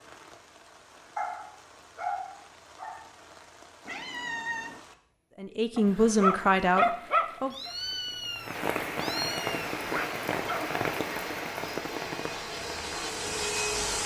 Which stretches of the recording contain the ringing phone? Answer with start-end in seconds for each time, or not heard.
not heard.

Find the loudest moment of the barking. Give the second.
7 s.